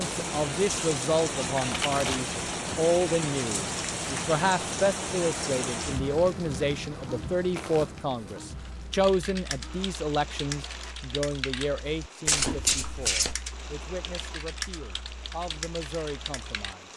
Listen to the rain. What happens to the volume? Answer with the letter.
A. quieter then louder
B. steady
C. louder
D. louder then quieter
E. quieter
E.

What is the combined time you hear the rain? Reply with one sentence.
The rain can be heard for 17 seconds in total.